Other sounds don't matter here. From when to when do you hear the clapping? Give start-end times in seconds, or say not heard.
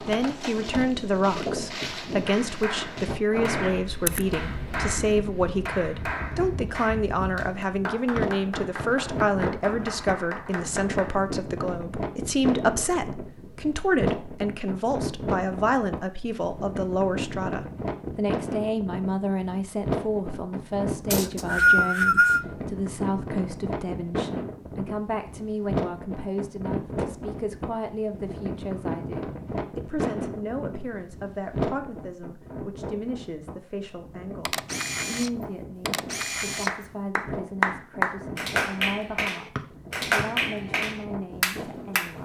2.2-11.2, 36.6-42.2.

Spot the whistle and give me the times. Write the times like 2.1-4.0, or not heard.
8.2-8.8, 21.1-22.4, 39.5-40.2.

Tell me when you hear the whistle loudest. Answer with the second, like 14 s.
22 s.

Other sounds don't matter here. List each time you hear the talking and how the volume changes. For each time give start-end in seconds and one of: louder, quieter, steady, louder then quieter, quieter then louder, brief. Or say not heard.
0.0-42.2 quieter.